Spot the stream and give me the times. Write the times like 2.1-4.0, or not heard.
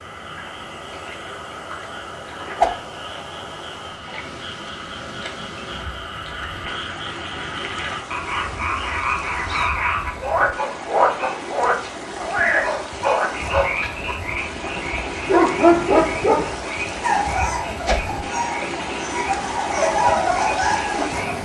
0.0-21.4.